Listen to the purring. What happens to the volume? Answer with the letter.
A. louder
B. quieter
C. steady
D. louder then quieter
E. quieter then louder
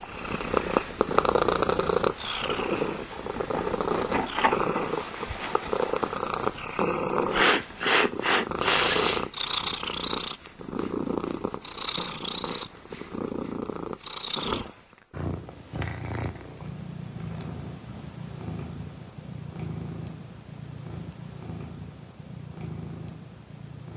B.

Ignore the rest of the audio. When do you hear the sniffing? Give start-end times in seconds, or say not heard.
7.3-9.2.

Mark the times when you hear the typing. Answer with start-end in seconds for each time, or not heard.
not heard.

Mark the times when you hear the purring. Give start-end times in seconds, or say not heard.
0.0-23.9.